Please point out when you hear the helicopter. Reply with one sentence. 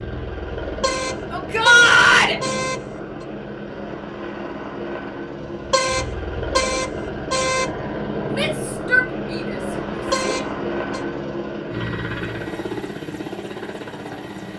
The helicopter can be heard from 0.0 to 14.5 s.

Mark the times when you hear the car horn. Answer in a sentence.
The car horn can be heard from 0.6 to 3.2 s, from 5.4 to 7.7 s and from 9.9 to 11.0 s.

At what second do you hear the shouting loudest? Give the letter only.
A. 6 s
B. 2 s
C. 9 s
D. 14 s
B.